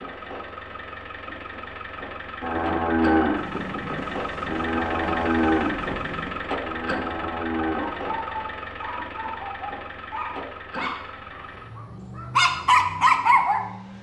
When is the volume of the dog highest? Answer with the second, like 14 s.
13 s.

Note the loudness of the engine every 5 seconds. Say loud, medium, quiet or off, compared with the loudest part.
loud, loud, medium.